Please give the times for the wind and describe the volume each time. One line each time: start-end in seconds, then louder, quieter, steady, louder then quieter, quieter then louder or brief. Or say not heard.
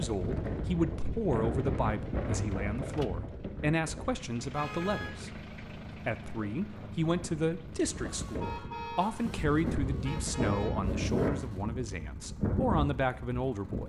0.0-13.8 quieter then louder.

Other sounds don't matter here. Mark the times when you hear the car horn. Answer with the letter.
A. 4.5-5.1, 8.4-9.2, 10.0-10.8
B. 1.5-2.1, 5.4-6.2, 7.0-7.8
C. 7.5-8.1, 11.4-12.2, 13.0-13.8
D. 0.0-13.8
A.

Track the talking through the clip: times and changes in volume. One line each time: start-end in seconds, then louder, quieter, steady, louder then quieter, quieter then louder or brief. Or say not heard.
0.0-13.8 steady.